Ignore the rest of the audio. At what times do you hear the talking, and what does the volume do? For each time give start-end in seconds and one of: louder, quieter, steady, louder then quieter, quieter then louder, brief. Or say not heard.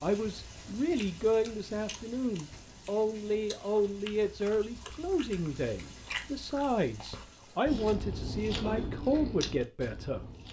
0.0-10.2 steady.